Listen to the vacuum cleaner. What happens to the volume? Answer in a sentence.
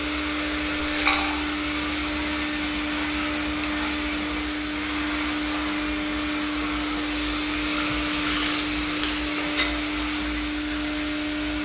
The loudness of the vacuum cleaner stays about the same.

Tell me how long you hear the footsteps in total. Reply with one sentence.
You can't hear the footsteps here.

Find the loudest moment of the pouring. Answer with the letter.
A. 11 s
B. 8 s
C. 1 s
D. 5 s
C.